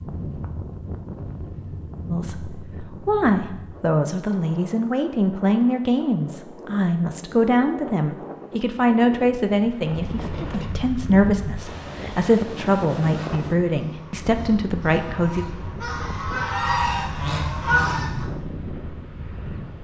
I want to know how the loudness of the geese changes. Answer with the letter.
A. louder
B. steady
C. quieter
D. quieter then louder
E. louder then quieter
A.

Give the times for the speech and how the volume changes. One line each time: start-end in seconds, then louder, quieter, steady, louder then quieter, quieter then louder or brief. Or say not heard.
2.1-15.4 steady.